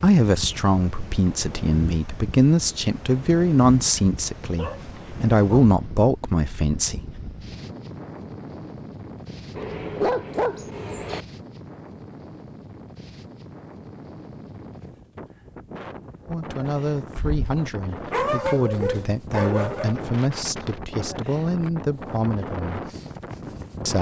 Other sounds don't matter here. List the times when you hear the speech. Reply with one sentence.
The speech can be heard from 0.0 to 7.0 s and from 16.2 to 22.9 s.